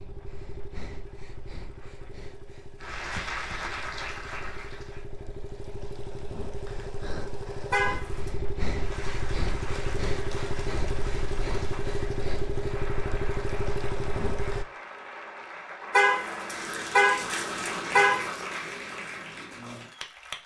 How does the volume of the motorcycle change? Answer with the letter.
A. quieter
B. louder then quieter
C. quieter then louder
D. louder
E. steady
D.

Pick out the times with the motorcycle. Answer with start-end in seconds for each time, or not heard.
0.0-14.7.